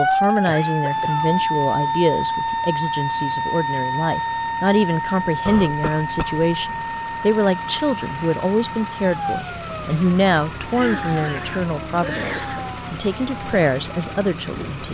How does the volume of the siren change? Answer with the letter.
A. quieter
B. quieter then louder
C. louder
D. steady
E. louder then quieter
A.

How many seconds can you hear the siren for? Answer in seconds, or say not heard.
15 s.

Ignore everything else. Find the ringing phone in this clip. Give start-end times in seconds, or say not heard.
not heard.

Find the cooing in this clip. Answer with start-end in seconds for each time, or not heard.
not heard.